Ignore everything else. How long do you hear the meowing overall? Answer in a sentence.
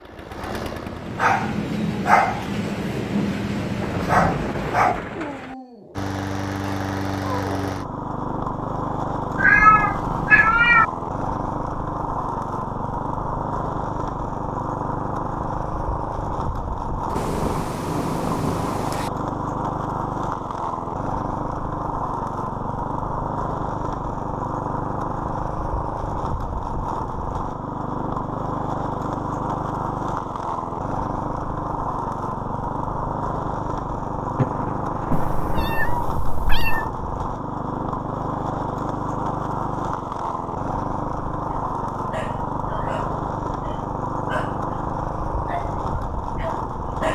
The meowing can be heard for 3 seconds in total.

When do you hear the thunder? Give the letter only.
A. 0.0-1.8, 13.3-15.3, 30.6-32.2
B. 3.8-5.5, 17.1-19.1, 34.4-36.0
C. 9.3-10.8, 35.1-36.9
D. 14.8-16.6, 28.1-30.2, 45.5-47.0
B.